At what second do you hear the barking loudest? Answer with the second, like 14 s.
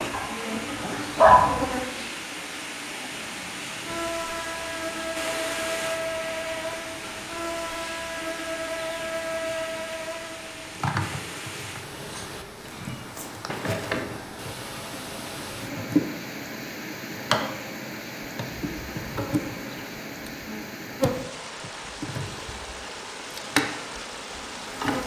1 s.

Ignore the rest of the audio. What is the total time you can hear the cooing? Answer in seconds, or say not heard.
not heard.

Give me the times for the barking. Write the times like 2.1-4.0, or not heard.
0.1-1.6.